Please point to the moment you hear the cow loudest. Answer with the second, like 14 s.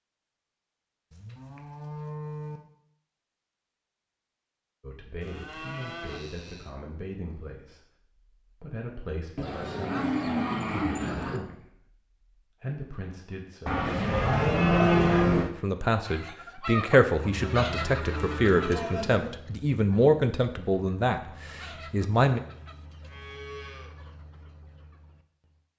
15 s.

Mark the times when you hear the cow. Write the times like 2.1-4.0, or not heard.
1.1-2.6, 5.2-6.8, 9.3-11.4, 13.7-15.5, 17.4-19.3, 23.1-23.9.